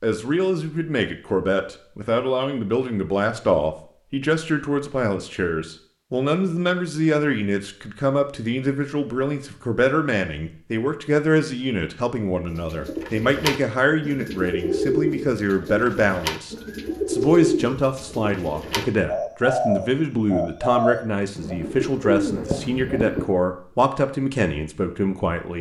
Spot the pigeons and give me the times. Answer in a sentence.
You can hear the pigeons from 12.4 to 23.2 s.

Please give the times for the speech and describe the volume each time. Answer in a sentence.
The speech can be heard from 0.0 to 25.5 s, at a steady volume.